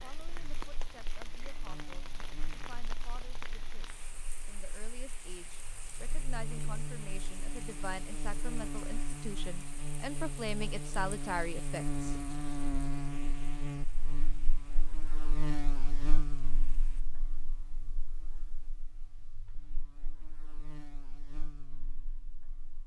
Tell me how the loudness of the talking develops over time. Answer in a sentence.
The volume of the talking goes up.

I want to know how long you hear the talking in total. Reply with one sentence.
The talking can be heard for 12 seconds in total.